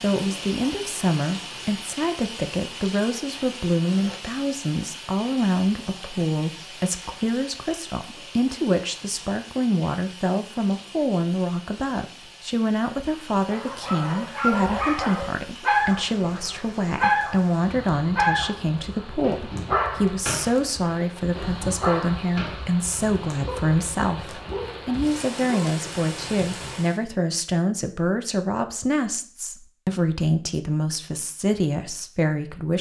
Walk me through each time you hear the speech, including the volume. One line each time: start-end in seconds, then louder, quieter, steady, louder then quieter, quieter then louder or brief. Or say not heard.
0.0-32.7 steady.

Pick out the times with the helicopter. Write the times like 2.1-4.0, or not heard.
not heard.